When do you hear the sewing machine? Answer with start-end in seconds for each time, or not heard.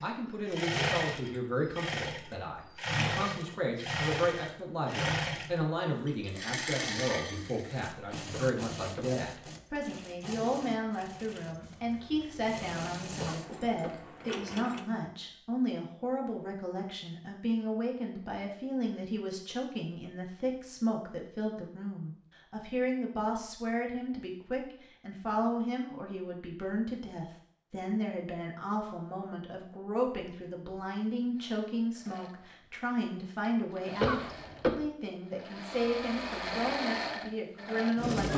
0.0-14.8, 31.4-38.3.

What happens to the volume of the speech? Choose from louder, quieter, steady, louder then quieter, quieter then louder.
steady.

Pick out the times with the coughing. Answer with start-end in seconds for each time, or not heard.
8.3-9.2, 13.2-14.1, 34.0-34.9.